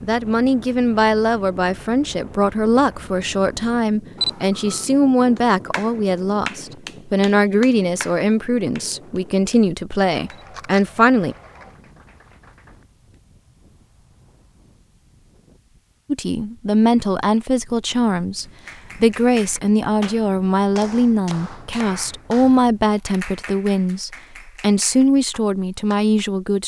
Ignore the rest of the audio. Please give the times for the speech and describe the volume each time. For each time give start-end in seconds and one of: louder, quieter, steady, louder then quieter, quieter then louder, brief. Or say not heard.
0.0-11.3 steady
16.1-26.6 steady.